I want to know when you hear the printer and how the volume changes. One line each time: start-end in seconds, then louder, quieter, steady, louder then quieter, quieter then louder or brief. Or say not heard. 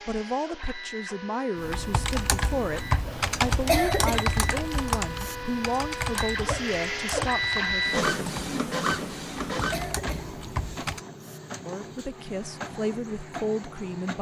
0.0-14.1 louder then quieter.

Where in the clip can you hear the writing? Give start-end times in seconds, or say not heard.
not heard.